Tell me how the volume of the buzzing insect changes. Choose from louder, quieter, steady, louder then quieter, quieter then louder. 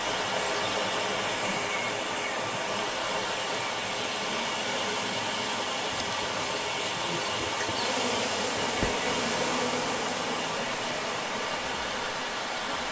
louder then quieter.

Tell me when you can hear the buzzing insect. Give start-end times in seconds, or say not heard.
4.2-12.8.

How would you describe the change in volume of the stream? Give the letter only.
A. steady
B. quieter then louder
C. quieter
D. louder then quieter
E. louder
A.